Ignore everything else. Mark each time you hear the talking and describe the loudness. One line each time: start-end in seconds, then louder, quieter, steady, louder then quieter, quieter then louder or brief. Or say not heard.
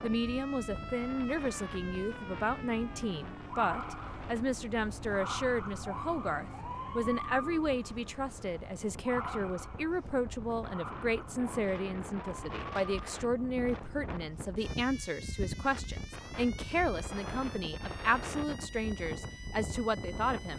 0.0-20.5 steady.